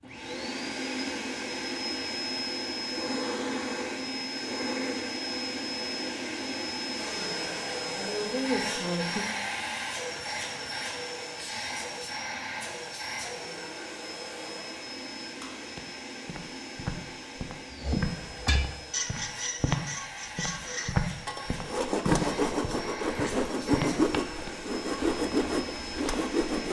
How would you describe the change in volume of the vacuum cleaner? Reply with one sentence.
The loudness of the vacuum cleaner goes down.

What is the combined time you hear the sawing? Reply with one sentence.
You can hear the sawing for 9 seconds altogether.